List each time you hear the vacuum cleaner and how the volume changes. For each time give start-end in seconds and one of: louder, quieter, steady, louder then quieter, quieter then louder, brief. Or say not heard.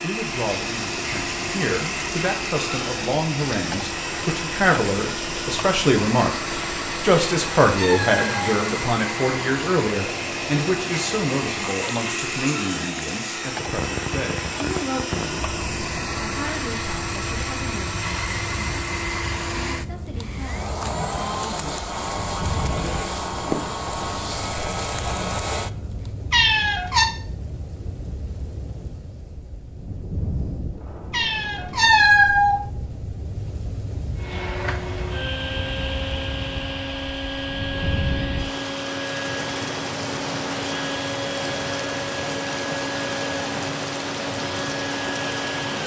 0.0-26.1 steady
34.1-45.8 steady.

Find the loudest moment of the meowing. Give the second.
32 s.